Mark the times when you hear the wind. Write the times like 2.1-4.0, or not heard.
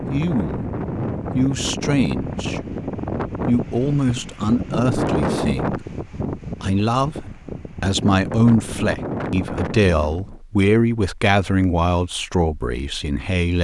0.0-10.4.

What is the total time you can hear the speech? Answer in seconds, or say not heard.
12 s.